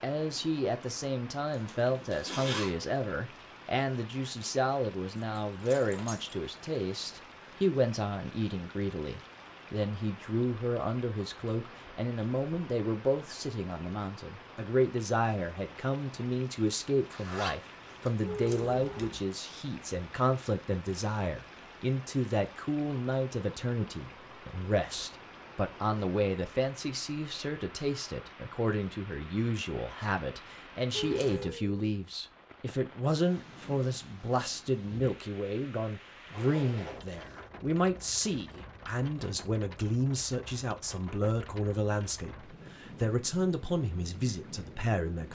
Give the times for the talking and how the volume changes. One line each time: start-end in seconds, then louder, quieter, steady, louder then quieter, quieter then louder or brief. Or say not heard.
0.0-45.2 steady.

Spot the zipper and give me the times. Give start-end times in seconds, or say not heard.
1.5-2.8, 17.1-18.1, 36.3-37.5.